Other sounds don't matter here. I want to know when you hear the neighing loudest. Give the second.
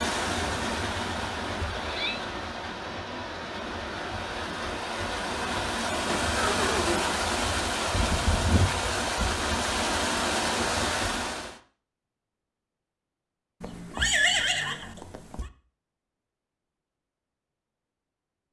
14 s.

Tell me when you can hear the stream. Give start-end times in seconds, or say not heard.
0.0-11.6.